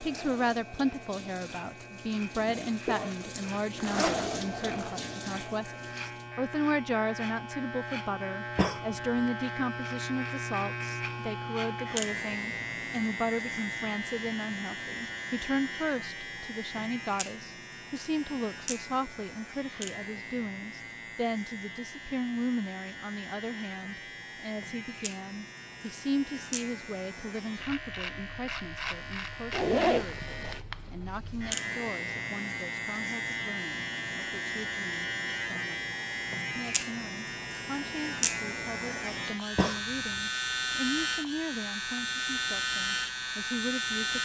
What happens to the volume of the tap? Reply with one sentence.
The loudness of the tap goes up, then down.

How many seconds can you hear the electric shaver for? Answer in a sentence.
You can hear the electric shaver for 44 seconds altogether.